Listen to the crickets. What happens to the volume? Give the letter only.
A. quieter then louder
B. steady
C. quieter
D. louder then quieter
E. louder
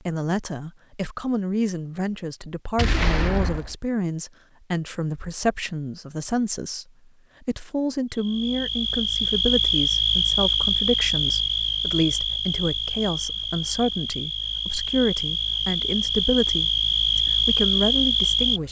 A.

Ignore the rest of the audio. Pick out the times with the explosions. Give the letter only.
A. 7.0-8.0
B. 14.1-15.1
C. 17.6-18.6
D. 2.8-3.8
D.